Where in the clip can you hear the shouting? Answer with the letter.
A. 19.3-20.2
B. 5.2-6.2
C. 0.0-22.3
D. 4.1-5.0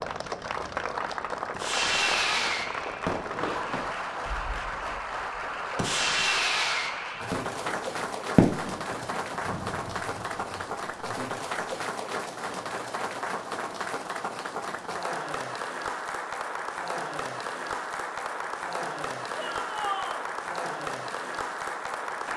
A.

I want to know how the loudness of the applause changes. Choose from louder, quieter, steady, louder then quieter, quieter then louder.
steady.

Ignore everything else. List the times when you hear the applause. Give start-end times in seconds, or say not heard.
0.0-22.3.